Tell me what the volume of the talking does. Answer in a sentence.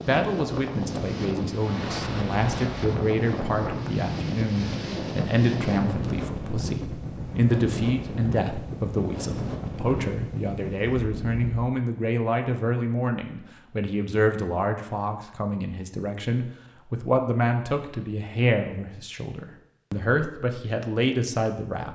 The loudness of the talking stays about the same.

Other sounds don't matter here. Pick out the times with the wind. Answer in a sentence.
The wind can be heard from 0.0 to 11.7 s.